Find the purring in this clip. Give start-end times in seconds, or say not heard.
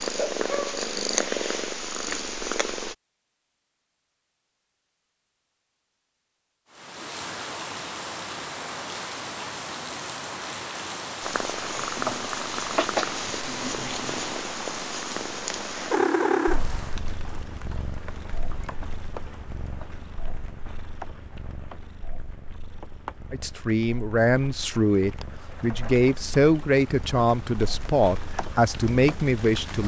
0.0-3.0, 11.2-29.8.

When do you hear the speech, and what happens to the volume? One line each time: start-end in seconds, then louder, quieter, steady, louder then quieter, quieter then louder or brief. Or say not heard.
23.3-29.8 steady.